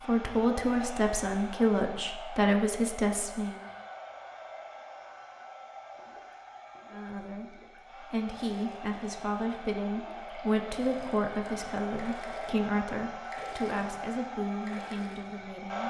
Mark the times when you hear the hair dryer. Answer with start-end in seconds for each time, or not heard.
0.0-15.8.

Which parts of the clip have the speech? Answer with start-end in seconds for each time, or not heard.
0.1-3.5, 6.9-15.8.